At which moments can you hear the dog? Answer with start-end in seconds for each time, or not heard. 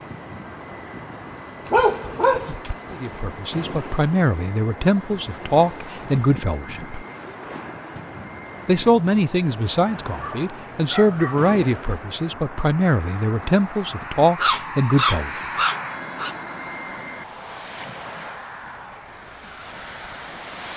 1.6-3.2, 10.2-11.5, 14.3-16.4.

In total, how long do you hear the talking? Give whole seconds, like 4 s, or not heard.
11 s.